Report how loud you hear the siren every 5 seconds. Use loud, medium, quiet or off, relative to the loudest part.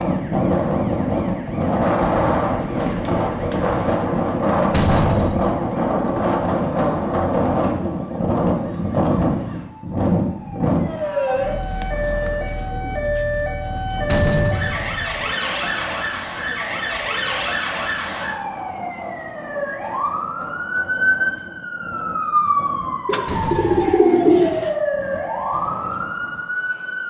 quiet, quiet, loud, loud, loud, loud.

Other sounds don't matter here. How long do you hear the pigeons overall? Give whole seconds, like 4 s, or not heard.
5 s.